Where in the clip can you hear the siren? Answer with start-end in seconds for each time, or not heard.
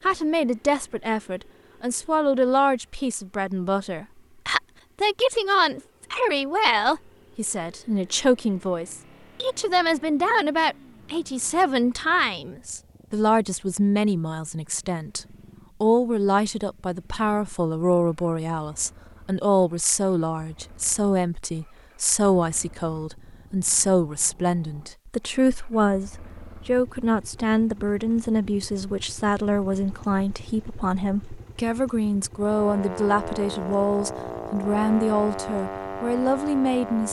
32.4-37.0.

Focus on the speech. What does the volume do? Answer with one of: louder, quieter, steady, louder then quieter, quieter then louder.
steady.